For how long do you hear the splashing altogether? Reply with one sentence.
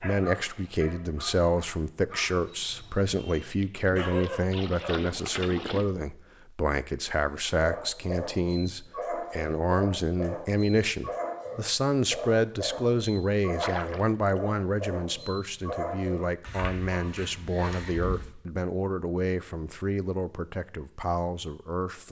The splashing can be heard for 3 seconds in total.